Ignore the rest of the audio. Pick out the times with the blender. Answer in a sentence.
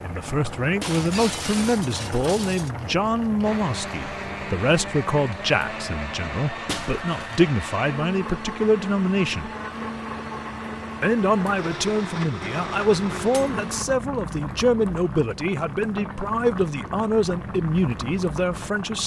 The blender can be heard from 3.4 to 13.8 s.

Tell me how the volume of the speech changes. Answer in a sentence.
The loudness of the speech stays about the same.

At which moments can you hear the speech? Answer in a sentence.
You can hear the speech from 0.0 to 9.5 s and from 11.0 to 19.0 s.